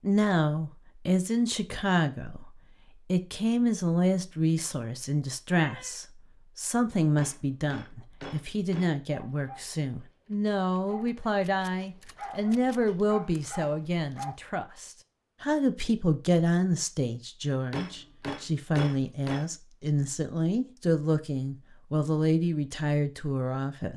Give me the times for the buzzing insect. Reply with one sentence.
You can't hear the buzzing insect here.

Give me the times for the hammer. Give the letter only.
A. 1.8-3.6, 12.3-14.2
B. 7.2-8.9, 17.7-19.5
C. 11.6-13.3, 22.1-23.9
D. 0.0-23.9
B.